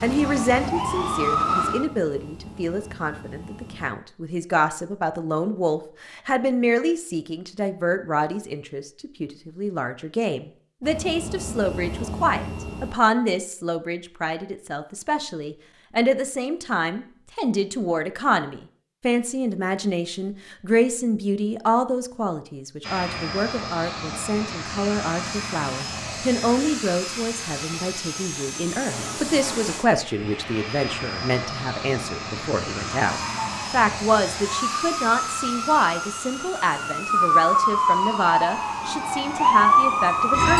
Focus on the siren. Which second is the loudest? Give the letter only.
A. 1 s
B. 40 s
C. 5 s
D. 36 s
B.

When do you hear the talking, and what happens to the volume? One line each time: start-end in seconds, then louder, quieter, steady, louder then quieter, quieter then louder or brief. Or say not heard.
0.0-40.5 steady.